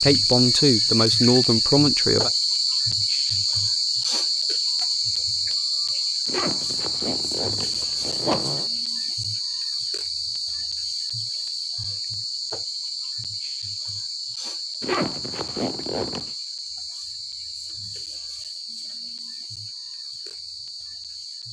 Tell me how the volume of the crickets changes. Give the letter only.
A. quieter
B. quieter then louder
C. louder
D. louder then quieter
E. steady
A.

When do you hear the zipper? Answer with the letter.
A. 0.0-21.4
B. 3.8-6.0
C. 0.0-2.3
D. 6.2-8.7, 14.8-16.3
D.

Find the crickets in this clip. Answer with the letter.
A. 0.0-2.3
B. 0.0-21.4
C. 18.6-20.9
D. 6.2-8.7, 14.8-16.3
B.